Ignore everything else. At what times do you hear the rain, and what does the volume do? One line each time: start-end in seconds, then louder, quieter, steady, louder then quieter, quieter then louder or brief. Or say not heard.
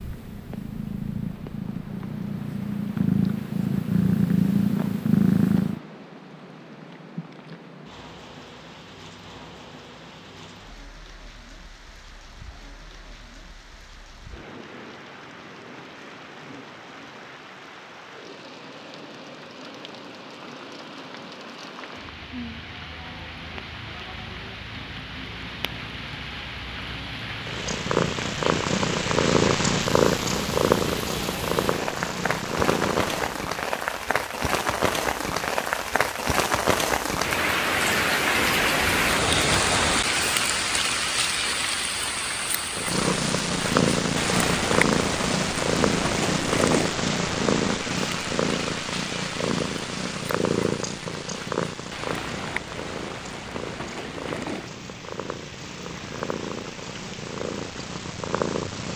0.0-58.9 louder then quieter.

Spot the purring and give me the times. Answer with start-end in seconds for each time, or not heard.
0.0-5.8, 27.4-33.4, 42.8-58.9.